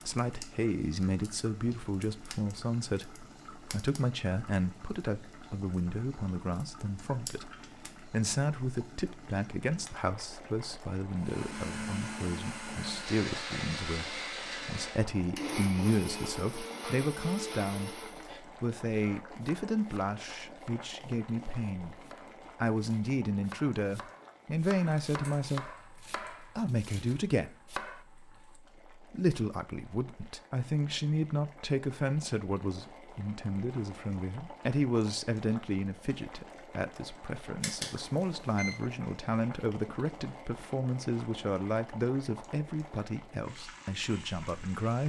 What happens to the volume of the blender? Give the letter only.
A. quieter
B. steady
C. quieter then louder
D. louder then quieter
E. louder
B.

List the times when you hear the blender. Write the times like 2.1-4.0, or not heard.
11.2-18.4.